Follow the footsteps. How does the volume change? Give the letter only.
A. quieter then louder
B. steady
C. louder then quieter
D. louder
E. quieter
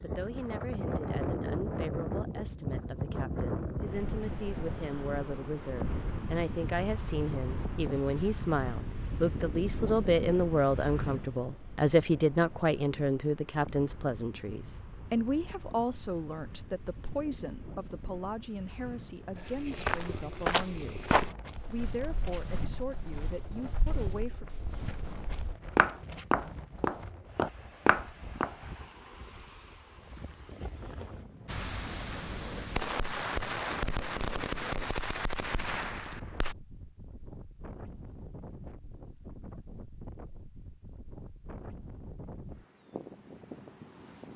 A.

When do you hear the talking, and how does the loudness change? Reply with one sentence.
You can hear the talking from 0.0 to 24.4 s, getting louder then quieter.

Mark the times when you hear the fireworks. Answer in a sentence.
You can hear the fireworks from 31.4 to 36.5 s.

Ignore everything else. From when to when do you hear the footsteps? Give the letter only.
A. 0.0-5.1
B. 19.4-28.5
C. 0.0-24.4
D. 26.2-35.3
B.